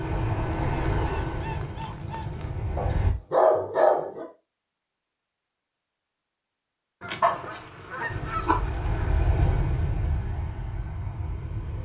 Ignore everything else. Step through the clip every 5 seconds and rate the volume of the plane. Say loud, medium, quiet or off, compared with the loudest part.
loud, loud, medium.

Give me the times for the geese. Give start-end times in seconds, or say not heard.
0.5-2.5, 7.0-9.1.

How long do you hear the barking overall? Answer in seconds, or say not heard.
3 s.